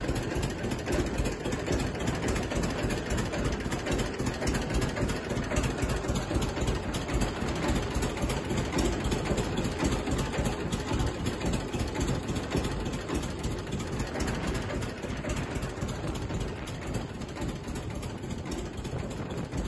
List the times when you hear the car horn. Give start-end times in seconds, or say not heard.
not heard.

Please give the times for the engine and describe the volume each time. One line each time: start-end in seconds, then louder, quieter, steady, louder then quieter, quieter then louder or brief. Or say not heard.
0.0-19.6 quieter.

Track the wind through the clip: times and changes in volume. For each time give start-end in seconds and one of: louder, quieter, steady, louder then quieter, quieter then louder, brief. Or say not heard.
0.0-19.6 steady.